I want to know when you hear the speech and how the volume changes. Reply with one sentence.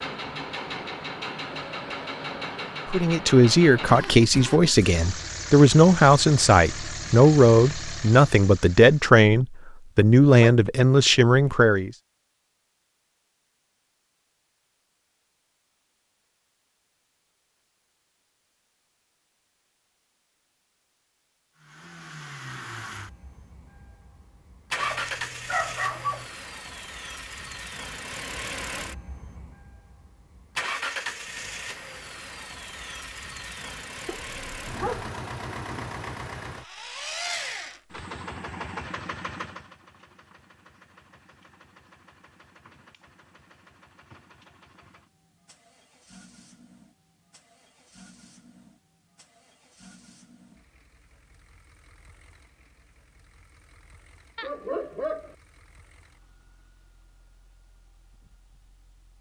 You can hear the speech from 2.9 to 11.9 s, at a steady volume.